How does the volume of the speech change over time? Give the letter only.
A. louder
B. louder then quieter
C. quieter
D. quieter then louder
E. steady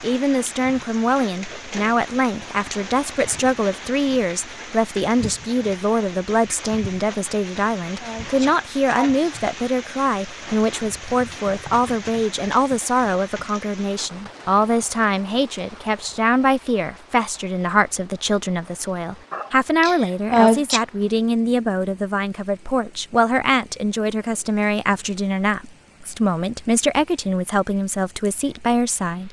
E.